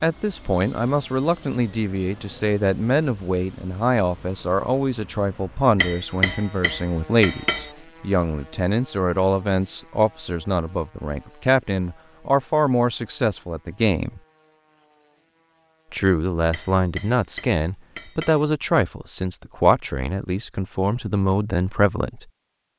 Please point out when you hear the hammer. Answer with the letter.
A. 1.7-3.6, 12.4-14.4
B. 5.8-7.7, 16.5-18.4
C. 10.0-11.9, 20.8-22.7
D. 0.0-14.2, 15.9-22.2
B.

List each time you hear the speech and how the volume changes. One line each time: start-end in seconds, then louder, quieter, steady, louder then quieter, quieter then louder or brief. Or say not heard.
0.0-14.2 steady
15.9-22.2 steady.